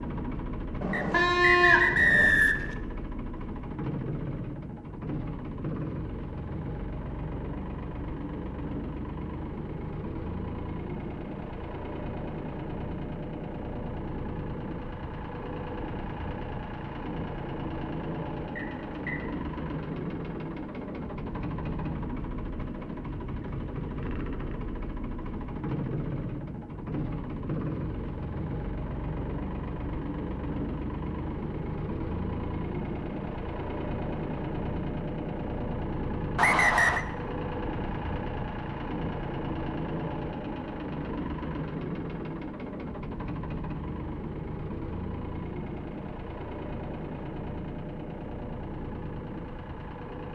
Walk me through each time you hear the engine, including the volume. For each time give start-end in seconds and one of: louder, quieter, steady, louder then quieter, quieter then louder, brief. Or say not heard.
0.0-50.3 steady.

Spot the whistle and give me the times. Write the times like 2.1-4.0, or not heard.
0.9-2.8, 18.6-19.2, 36.4-37.0.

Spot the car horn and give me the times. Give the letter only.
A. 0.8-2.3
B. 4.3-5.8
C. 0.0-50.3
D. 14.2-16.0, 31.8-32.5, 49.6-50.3
A.